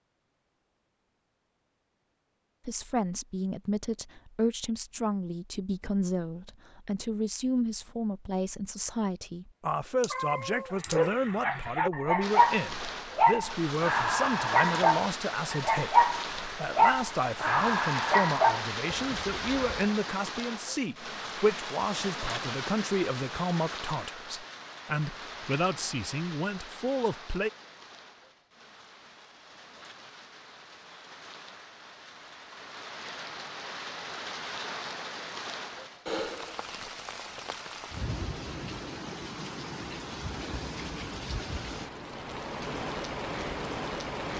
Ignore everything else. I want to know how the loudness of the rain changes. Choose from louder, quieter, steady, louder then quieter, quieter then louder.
quieter then louder.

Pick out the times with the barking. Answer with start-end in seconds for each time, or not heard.
10.7-19.8.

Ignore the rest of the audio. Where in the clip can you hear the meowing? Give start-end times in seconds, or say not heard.
10.0-11.1.